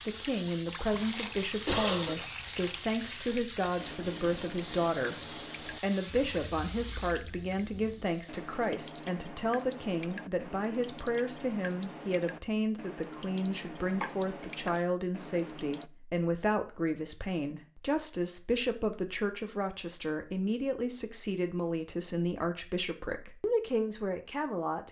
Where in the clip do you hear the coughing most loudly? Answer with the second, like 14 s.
2 s.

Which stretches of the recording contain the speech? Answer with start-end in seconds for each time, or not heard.
0.1-24.8.